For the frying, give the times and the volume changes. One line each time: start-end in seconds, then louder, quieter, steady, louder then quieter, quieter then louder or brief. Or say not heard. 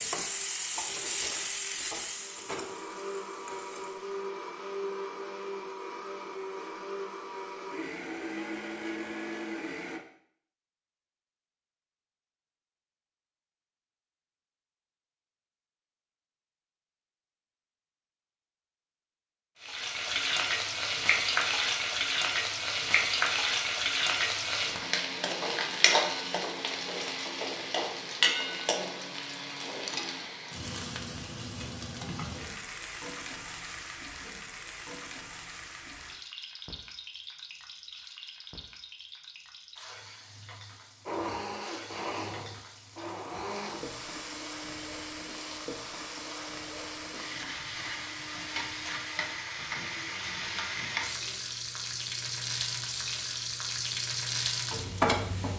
0.0-4.3 quieter
19.6-55.5 quieter then louder.